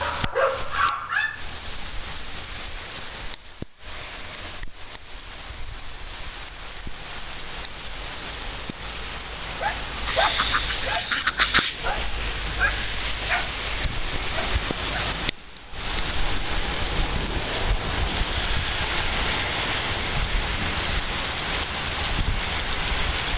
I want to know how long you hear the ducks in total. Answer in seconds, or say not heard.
2 s.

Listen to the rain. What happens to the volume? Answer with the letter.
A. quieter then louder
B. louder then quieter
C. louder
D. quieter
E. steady
C.